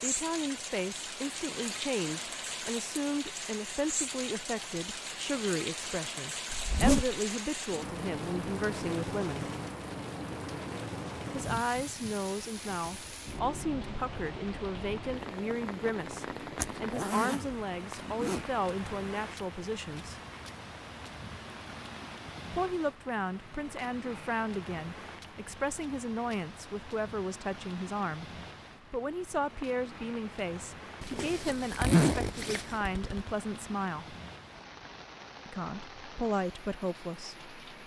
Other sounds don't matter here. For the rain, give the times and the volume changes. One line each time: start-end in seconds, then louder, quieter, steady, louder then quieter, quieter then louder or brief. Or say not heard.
0.0-37.8 quieter.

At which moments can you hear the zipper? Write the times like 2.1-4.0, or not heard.
6.5-7.2, 16.6-18.4, 31.0-33.3.